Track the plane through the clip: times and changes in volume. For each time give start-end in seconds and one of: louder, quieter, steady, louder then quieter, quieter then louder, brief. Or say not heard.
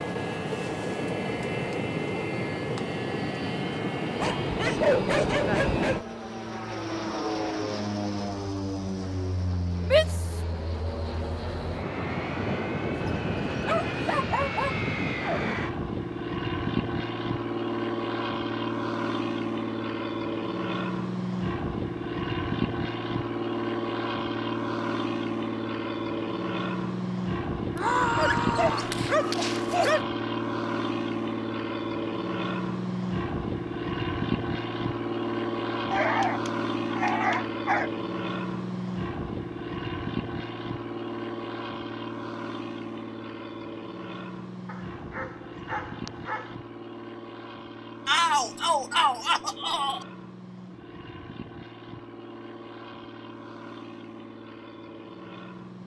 0.0-55.8 quieter.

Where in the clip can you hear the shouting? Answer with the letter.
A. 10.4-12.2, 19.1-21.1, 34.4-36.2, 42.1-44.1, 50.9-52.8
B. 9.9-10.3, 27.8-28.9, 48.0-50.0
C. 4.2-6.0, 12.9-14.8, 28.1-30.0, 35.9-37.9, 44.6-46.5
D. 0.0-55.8
B.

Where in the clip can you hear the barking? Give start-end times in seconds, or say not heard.
4.2-6.0, 12.9-14.8, 28.1-30.0, 35.9-37.9, 44.6-46.5.